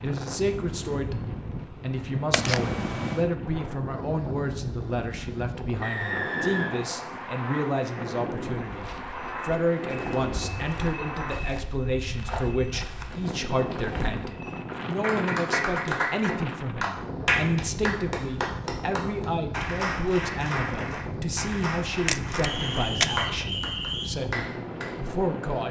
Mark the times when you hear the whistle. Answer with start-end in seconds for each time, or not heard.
5.8-7.1, 22.4-24.1.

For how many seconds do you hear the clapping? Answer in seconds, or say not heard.
10 s.